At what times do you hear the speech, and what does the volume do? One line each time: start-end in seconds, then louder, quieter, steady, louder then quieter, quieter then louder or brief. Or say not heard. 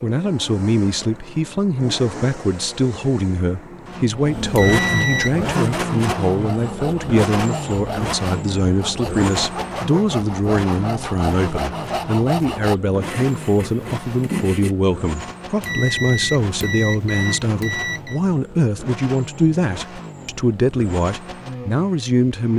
0.0-22.5 steady.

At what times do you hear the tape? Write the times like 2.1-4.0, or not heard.
not heard.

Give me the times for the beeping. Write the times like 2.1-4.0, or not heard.
4.5-5.5, 15.6-18.2.